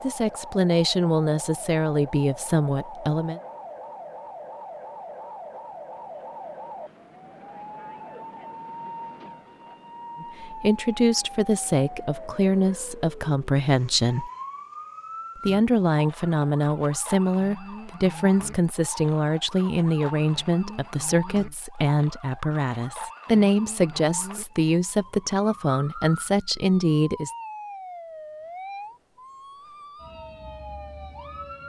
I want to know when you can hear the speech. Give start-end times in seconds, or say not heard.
0.0-3.4, 10.2-14.3, 15.4-27.3.